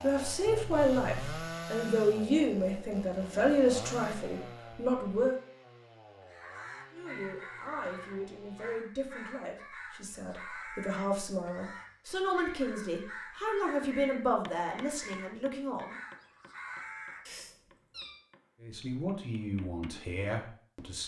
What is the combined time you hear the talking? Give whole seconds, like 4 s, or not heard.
17 s.